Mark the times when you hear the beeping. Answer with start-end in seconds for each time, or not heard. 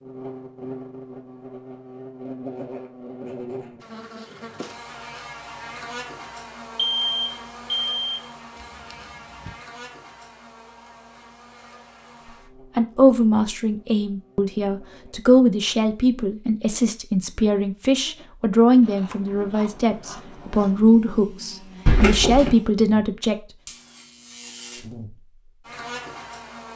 6.8-8.2, 21.9-22.5.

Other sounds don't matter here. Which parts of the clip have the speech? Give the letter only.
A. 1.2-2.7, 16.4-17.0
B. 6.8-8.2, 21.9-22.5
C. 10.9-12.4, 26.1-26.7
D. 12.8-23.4
D.